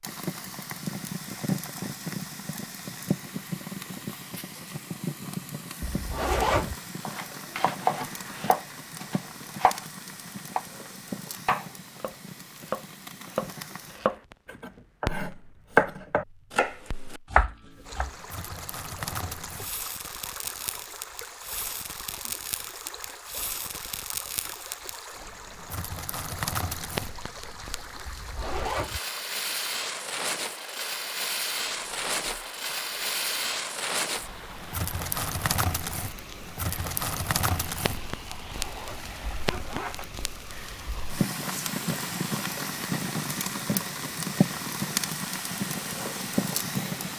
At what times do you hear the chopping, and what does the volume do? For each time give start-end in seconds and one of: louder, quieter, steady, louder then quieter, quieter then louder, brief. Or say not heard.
7.0-9.8 brief
10.6-18.1 louder.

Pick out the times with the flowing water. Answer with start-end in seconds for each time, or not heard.
17.8-47.1.